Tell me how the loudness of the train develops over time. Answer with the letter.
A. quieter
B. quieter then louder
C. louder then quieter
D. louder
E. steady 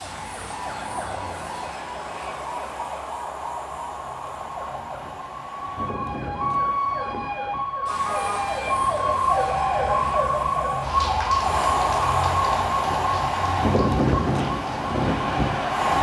D.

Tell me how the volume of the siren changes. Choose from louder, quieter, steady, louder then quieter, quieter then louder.
louder then quieter.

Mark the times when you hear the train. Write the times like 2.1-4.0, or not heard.
0.0-15.9.